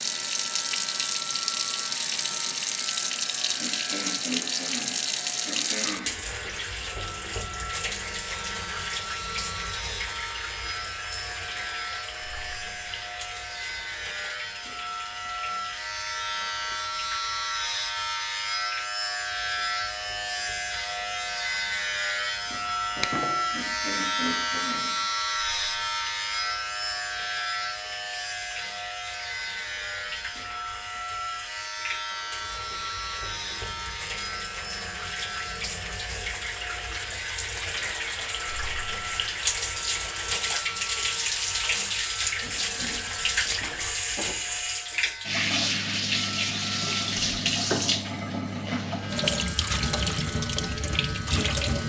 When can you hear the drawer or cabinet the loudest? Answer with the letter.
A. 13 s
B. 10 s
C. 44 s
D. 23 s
D.